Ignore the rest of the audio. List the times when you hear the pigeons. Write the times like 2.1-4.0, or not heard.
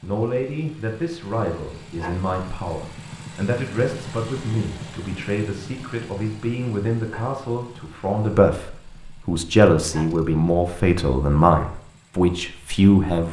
not heard.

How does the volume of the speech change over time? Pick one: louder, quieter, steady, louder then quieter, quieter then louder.
louder.